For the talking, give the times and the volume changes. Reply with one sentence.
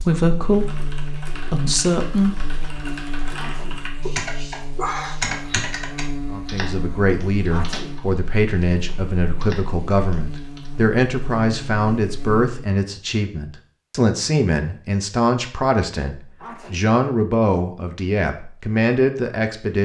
You can hear the talking briefly from 0.0 to 2.4 s; and from 6.3 to 19.8 s, at a steady volume.